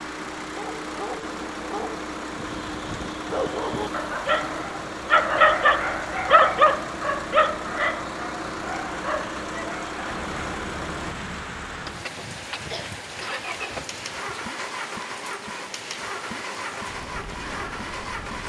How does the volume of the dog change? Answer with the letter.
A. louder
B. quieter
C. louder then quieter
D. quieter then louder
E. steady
C.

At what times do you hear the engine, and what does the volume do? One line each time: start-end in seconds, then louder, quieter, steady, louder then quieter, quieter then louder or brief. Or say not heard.
0.0-18.4 steady.